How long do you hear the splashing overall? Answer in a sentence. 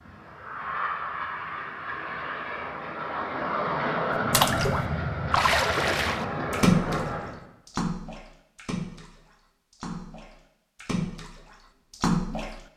The splashing can be heard for 8 seconds in total.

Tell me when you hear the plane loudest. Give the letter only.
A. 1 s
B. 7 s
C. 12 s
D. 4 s
D.